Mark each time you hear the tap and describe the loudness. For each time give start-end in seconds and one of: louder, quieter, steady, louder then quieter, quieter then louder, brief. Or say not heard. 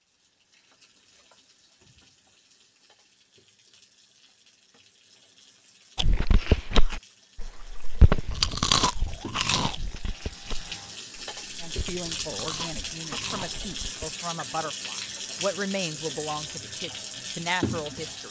0.0-18.2 louder.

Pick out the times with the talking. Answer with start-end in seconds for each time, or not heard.
11.6-18.2.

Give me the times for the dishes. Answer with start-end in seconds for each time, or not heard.
not heard.